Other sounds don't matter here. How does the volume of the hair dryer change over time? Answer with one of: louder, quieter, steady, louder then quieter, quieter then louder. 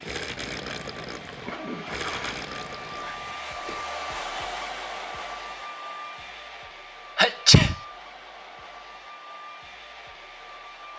louder then quieter.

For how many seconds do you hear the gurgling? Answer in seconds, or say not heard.
4 s.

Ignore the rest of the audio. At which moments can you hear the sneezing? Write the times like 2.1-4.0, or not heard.
1.4-3.2, 7.2-7.8.